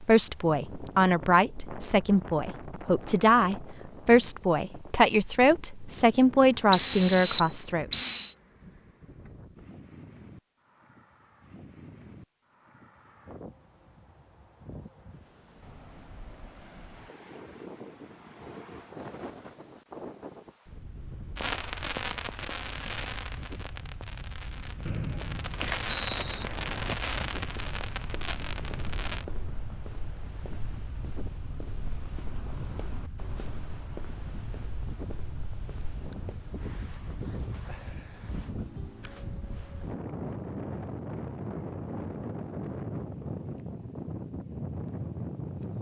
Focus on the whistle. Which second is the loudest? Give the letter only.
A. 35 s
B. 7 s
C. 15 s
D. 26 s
B.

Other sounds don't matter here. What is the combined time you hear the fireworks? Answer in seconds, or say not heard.
8 s.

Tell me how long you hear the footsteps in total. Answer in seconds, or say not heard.
11 s.